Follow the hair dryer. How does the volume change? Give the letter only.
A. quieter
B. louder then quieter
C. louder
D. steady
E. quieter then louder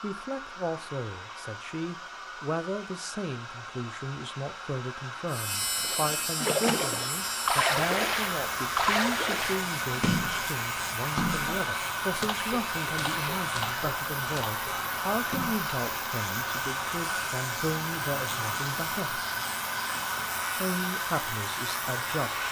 C.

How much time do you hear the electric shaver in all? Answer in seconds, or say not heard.
17 s.